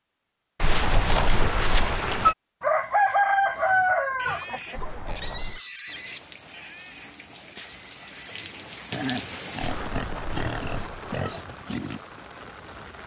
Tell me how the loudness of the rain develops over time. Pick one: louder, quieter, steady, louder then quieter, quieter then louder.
louder then quieter.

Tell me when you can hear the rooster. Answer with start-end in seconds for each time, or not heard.
2.6-5.2.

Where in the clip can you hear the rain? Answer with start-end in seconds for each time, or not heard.
5.8-13.0.